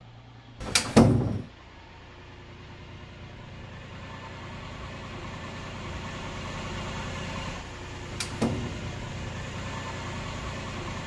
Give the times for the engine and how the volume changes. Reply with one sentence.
The engine can be heard from 0.0 to 11.0 s, getting louder.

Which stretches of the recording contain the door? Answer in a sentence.
You can hear the door from 0.6 to 1.4 s and from 8.1 to 8.9 s.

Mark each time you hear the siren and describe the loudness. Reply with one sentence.
You can't hear the siren here.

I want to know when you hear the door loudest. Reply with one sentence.
The volume of the door peaks at 1 second.